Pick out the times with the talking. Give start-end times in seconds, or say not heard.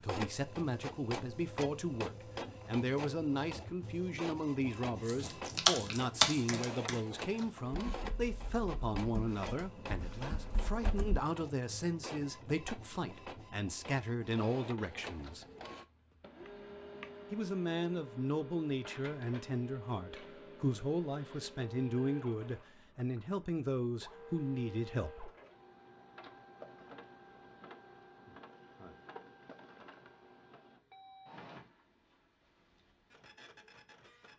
0.0-15.4, 17.3-25.3.